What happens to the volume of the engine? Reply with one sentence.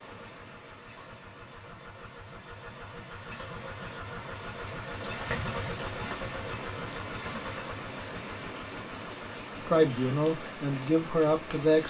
The loudness of the engine goes up, then down.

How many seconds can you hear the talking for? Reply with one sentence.
The talking can be heard for 2 seconds in total.